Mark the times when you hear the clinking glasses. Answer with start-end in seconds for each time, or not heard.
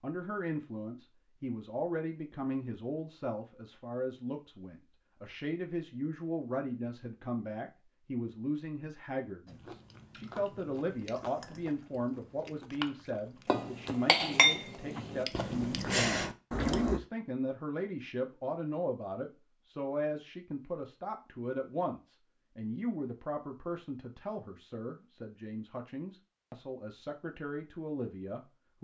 13.4-15.2.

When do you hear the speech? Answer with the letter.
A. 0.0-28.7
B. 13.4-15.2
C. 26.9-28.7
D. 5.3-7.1
A.